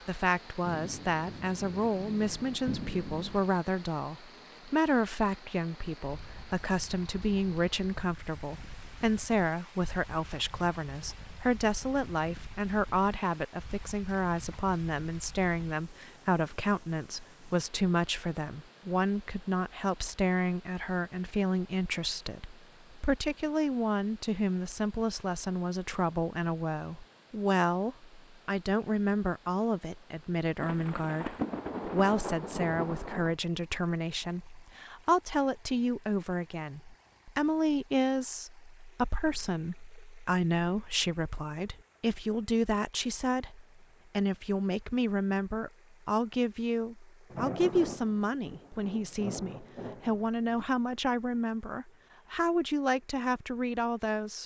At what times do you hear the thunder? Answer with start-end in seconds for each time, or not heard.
0.7-3.5, 30.6-33.4, 47.3-50.6.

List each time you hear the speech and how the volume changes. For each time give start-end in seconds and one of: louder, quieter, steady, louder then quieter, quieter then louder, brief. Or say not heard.
0.1-54.4 steady.